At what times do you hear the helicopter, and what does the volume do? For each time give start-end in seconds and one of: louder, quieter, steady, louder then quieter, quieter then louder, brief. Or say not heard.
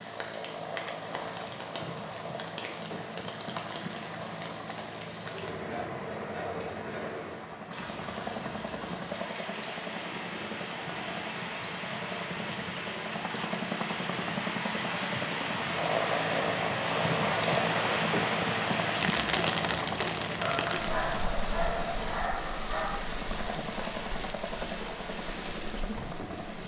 0.0-26.6 louder then quieter.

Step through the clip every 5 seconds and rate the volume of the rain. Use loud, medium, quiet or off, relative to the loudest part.
medium, medium, medium, loud, medium, medium.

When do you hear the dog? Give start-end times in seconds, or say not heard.
5.7-7.2, 20.4-23.0.